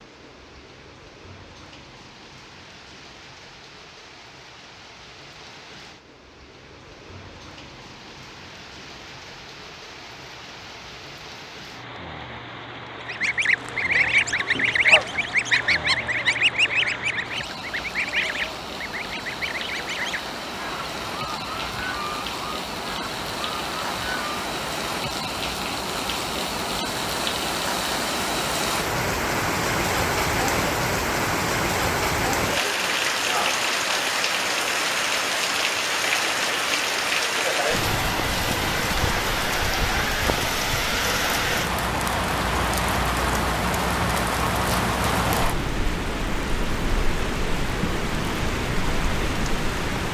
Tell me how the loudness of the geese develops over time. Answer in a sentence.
The volume of the geese goes down.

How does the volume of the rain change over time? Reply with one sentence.
The volume of the rain goes up.